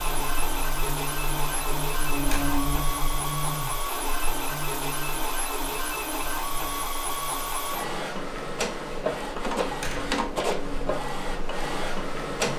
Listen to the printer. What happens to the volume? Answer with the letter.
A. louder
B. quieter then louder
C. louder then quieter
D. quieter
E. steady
E.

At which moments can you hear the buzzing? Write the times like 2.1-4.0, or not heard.
0.0-12.5.